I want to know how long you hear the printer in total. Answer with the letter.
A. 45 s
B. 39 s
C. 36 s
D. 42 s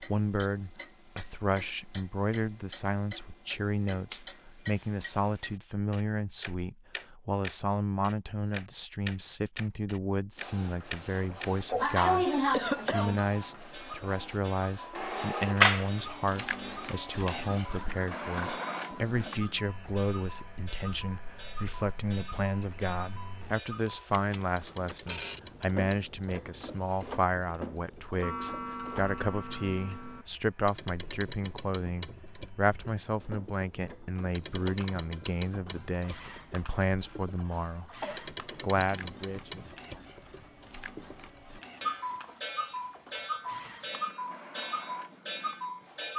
C.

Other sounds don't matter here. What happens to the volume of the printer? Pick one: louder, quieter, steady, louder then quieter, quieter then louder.
quieter.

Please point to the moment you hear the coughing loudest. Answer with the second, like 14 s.
12 s.